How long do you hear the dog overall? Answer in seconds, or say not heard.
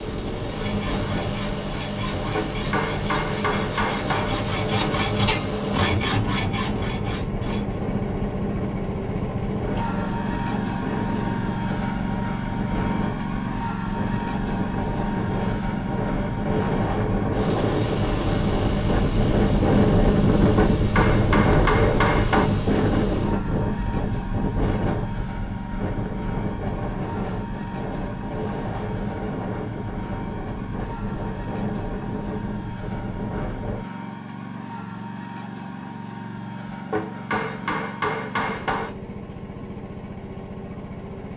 not heard.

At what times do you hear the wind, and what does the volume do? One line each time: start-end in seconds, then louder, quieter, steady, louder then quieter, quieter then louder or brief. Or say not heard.
0.0-33.8 louder then quieter.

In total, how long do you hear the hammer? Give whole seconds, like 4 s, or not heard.
6 s.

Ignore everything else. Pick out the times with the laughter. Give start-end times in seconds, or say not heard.
not heard.